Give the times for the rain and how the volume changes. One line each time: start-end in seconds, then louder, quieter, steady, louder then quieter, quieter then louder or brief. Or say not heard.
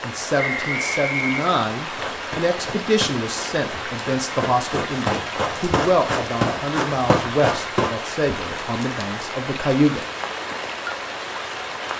0.0-11.9 steady.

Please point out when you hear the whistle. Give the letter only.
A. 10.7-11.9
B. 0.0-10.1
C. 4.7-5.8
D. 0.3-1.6
D.